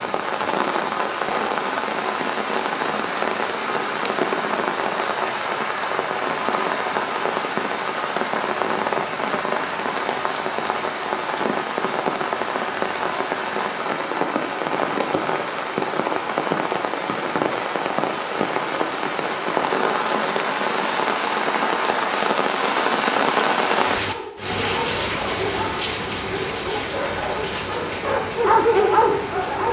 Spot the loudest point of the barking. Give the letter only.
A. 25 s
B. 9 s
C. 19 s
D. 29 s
D.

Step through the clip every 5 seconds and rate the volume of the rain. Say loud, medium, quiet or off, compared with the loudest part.
loud, loud, loud, loud, loud, medium.